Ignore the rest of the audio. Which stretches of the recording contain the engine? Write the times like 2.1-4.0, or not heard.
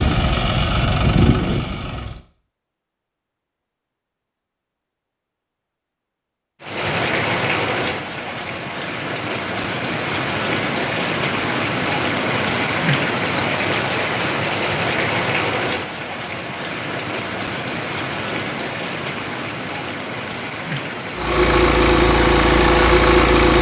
0.0-2.2, 21.1-23.5.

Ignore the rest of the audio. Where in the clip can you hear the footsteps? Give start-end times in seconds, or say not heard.
not heard.